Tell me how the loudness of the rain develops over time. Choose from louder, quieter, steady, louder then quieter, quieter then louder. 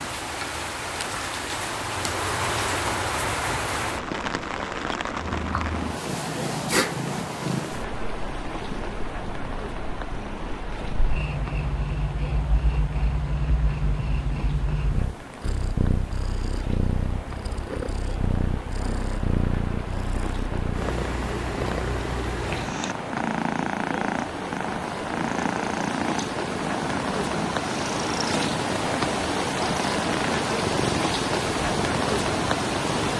quieter then louder.